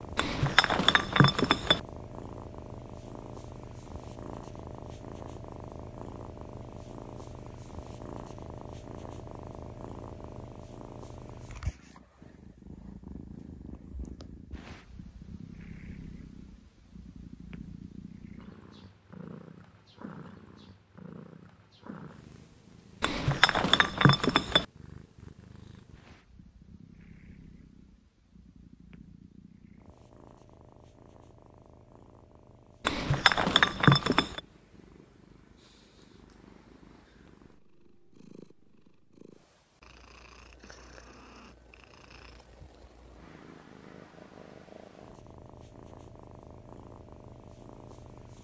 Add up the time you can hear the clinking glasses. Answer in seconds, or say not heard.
5 s.